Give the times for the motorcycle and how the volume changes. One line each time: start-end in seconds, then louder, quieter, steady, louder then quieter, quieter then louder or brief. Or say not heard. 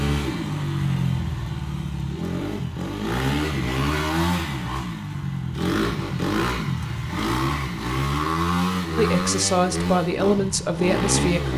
0.0-11.5 steady.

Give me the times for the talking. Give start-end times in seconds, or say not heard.
8.9-11.5.